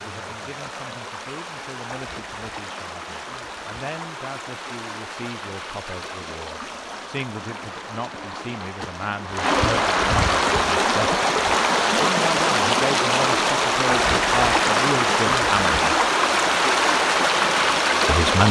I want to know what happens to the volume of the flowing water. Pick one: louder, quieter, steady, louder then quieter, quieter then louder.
louder.